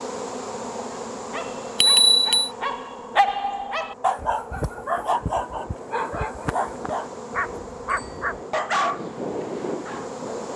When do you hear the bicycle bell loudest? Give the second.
2 s.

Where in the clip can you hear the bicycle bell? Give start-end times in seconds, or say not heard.
1.8-2.5, 7.8-8.2.